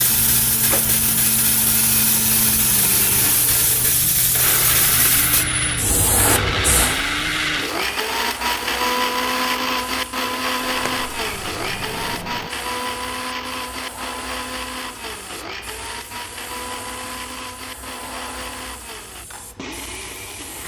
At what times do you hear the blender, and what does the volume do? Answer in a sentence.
The blender can be heard from 0.0 to 20.6 s, getting louder then quieter.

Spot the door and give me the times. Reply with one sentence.
The door can be heard from 0.6 to 1.0 s and from 10.6 to 12.5 s.